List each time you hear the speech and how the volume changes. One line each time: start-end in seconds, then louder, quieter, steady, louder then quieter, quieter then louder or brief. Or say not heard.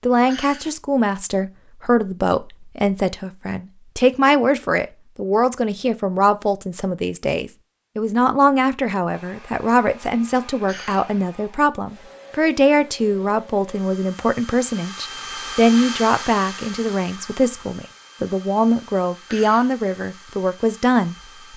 0.0-21.5 steady.